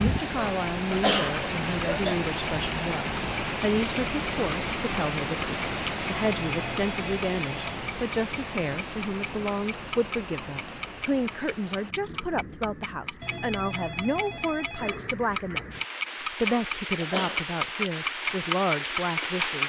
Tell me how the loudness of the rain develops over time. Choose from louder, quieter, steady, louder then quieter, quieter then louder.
quieter then louder.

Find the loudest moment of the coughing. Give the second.
1 s.